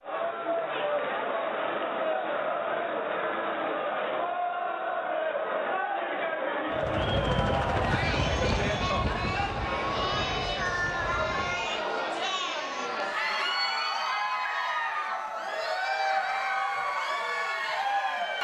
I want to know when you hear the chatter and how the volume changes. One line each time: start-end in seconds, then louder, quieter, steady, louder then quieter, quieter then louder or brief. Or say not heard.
0.0-18.3 steady.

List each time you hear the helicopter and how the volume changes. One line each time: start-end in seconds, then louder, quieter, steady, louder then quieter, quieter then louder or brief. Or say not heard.
6.7-11.8 quieter.